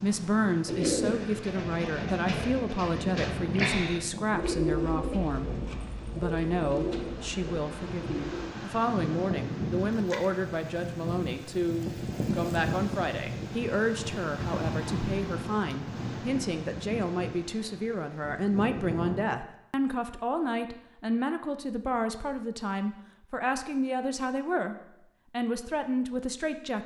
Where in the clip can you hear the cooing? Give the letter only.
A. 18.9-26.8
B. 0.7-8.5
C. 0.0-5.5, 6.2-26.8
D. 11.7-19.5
B.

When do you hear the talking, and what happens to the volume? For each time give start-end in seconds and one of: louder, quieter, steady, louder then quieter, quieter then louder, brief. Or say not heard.
0.0-5.5 steady
6.2-26.8 steady.